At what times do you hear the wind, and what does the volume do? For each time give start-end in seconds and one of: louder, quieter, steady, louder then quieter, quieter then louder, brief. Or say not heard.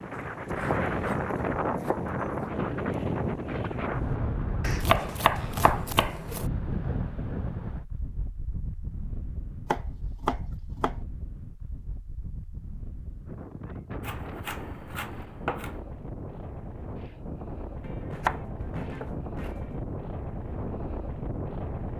0.0-21.9 quieter then louder.